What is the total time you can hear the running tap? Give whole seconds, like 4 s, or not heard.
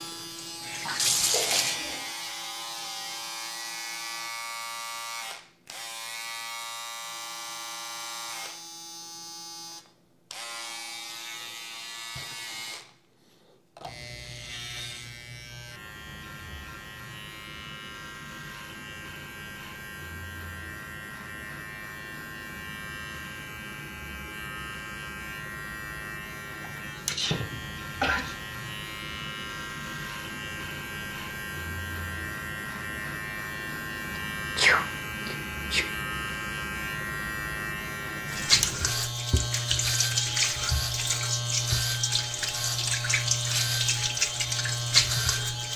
9 s.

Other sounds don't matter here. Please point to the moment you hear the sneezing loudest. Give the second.
35 s.